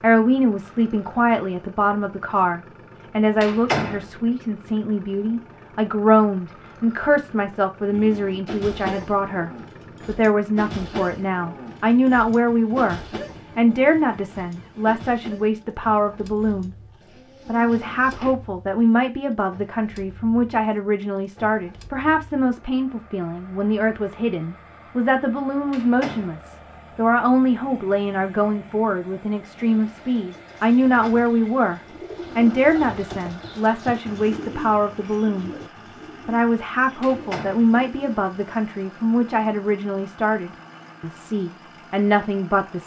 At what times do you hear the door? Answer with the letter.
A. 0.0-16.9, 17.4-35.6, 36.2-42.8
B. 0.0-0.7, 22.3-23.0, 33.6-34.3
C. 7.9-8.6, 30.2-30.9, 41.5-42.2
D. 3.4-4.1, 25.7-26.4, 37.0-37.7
D.